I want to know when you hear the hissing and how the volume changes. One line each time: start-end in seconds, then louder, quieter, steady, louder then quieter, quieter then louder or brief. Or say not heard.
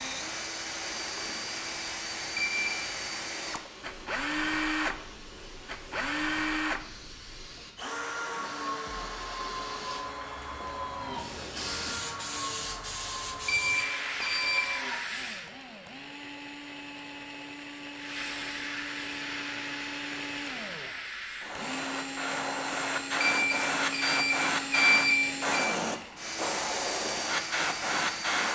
0.1-15.5 louder
17.9-28.5 louder.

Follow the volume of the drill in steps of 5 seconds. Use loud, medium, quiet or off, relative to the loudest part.
loud, loud, medium, medium, loud, loud.